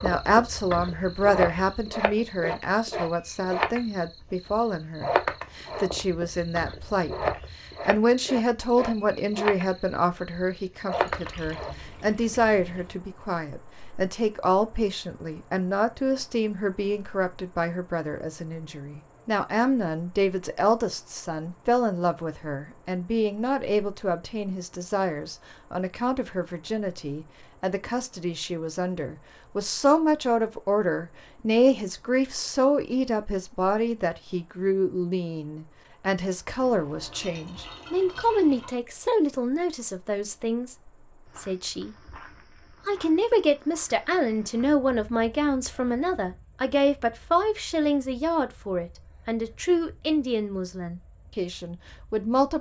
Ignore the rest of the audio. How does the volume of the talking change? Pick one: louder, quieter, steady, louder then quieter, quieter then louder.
steady.